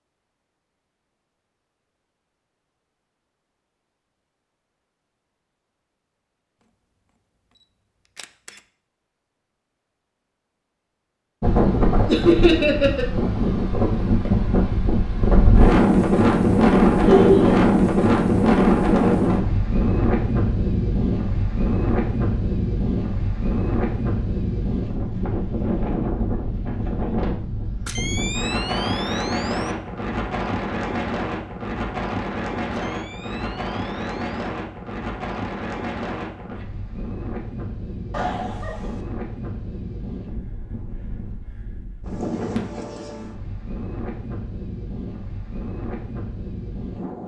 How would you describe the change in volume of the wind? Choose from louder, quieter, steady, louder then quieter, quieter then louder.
quieter.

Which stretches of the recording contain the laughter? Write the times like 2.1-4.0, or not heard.
12.1-13.1, 17.0-17.6, 38.1-39.0.